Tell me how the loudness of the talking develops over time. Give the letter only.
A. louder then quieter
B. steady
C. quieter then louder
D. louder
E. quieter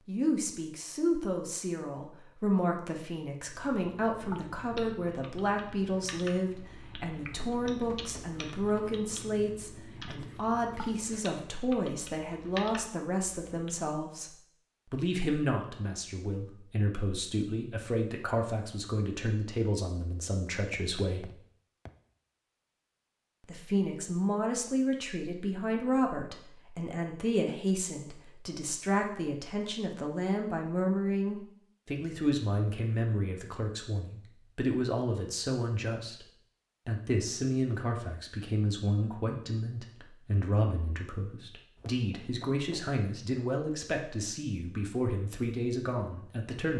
B.